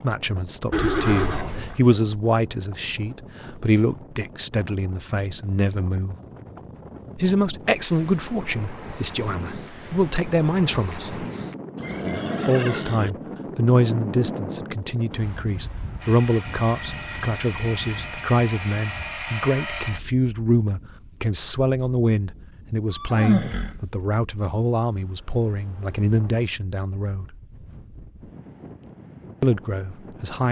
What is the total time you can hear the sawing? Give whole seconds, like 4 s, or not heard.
4 s.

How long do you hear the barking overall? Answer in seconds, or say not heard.
not heard.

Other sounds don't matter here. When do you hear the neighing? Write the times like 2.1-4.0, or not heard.
0.7-1.8, 11.8-13.1, 22.9-23.8.